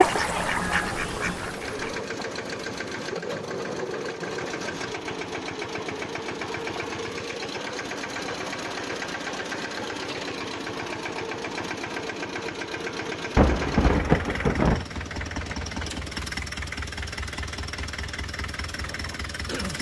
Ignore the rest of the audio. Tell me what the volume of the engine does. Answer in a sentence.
The loudness of the engine stays about the same.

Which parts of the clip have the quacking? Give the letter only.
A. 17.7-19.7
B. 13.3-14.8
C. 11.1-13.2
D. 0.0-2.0
D.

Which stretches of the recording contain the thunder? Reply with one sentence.
You can hear the thunder from 13.3 to 14.8 s.